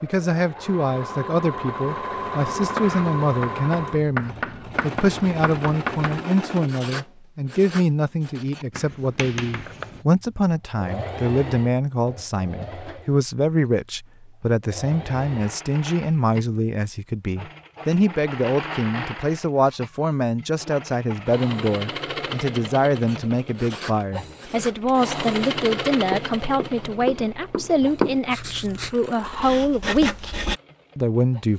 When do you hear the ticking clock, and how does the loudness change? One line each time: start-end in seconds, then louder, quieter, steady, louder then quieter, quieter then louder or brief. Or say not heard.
not heard.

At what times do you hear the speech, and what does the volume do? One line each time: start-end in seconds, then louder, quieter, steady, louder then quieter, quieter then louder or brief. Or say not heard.
0.0-31.5 steady.